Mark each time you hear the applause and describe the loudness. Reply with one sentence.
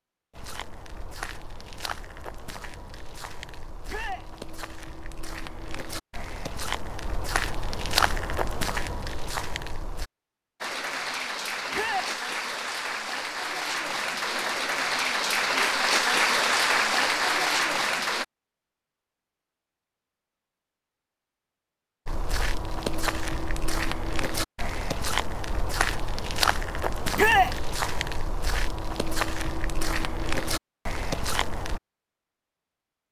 The applause can be heard from 10.6 to 18.2 s, getting louder.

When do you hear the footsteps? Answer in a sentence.
You can hear the footsteps from 0.3 to 10.1 s and from 22.1 to 31.8 s.